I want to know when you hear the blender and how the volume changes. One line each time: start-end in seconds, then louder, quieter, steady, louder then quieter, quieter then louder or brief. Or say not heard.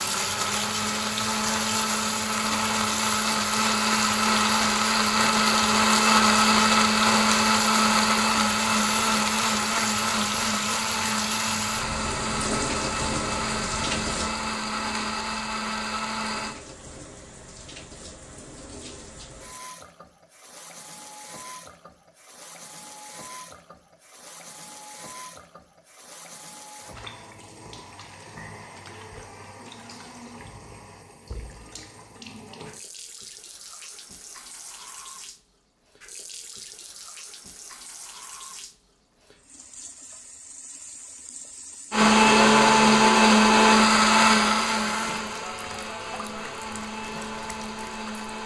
0.0-16.6 louder then quieter
41.9-48.4 quieter.